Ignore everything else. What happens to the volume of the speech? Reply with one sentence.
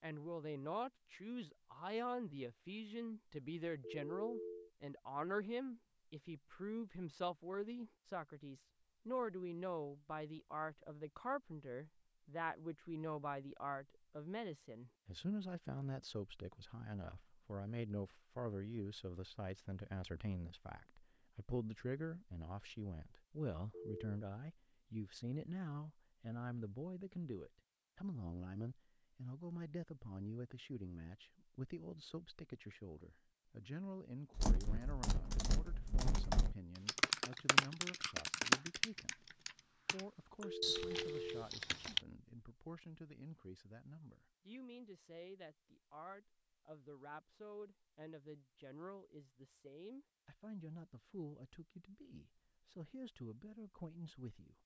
The volume of the speech goes down.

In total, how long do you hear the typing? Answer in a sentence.
The typing can be heard for 8 seconds in total.